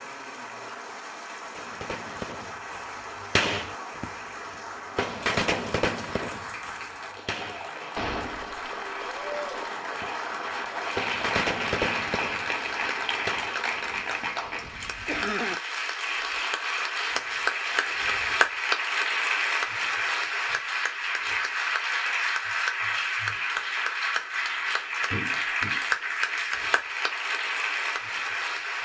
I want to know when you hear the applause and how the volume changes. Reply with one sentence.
You can hear the applause from 0.0 to 28.8 s, getting louder.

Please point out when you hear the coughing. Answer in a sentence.
The coughing can be heard from 14.7 to 15.6 s.